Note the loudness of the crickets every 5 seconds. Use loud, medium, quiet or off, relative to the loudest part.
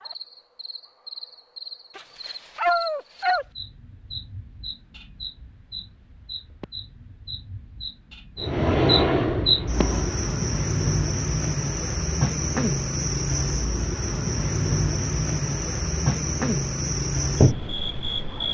quiet, medium, loud, loud.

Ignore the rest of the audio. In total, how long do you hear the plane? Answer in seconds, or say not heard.
2 s.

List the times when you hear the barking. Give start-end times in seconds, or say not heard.
1.9-3.5.